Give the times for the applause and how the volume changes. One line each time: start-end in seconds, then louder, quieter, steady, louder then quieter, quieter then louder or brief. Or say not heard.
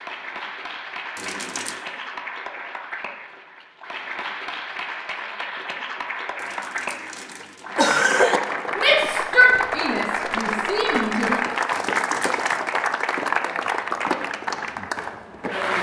0.0-15.7 louder.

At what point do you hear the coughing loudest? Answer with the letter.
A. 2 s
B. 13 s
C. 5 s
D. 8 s
D.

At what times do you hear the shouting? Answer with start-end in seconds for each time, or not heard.
8.8-11.3.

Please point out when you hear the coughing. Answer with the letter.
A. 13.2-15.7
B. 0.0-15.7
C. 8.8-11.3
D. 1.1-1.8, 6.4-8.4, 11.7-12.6
D.